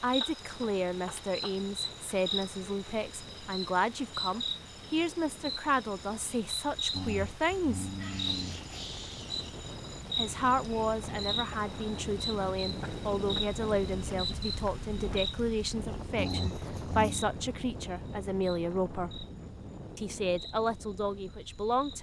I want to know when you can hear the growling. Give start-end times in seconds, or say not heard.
6.9-8.9, 16.1-17.3.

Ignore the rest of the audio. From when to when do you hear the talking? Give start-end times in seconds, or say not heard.
0.0-7.9, 10.2-19.2, 19.9-21.9.